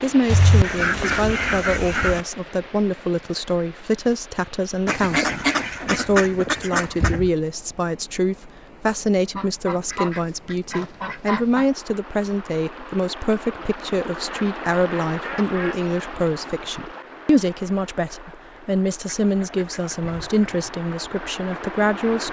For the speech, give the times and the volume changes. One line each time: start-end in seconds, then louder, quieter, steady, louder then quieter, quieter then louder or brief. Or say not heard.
0.0-22.2 steady.